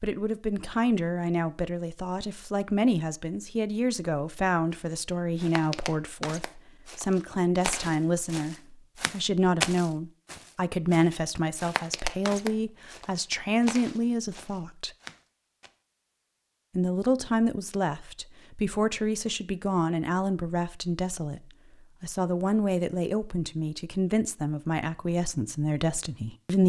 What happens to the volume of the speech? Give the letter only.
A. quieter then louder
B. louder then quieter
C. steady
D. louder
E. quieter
C.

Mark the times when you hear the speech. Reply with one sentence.
The speech can be heard from 0.0 to 14.9 s, from 16.8 to 21.4 s and from 22.0 to 26.6 s.